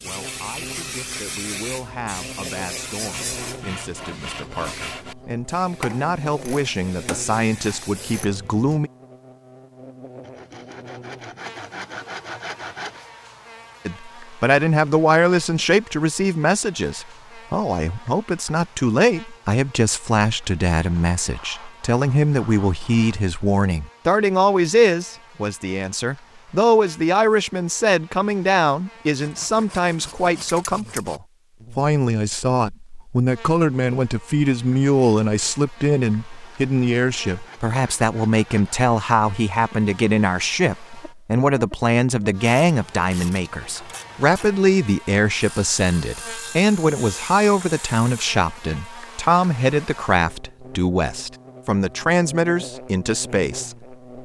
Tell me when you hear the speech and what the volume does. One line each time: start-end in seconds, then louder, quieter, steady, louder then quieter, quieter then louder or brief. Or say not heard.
0.0-8.9 louder
13.8-54.2 steady.